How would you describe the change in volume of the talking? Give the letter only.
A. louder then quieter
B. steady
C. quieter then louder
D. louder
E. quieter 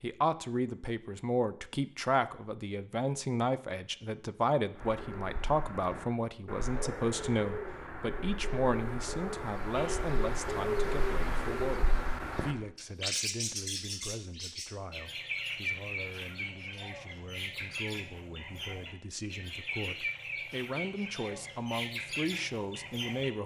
C.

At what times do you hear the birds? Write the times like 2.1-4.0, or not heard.
4.8-23.3.